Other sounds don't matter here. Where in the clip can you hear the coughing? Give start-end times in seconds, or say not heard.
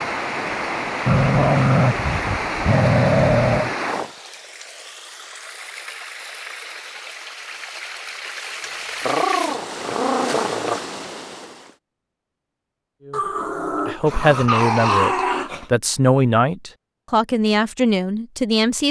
not heard.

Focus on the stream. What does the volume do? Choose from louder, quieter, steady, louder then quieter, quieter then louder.
quieter then louder.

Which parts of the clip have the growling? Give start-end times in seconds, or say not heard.
1.1-3.7, 9.1-10.8, 13.1-15.7.